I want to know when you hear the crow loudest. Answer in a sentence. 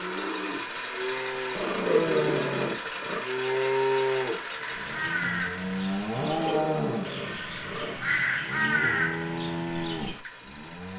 The volume of the crow peaks at 9 seconds.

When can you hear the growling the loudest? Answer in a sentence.
The loudest moment of the growling is at 2 seconds.